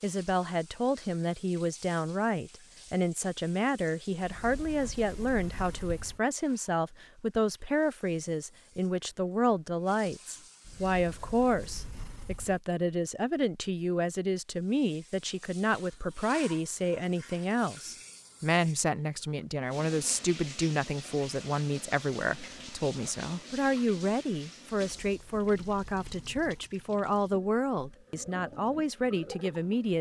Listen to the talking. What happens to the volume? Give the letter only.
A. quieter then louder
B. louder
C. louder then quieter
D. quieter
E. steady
E.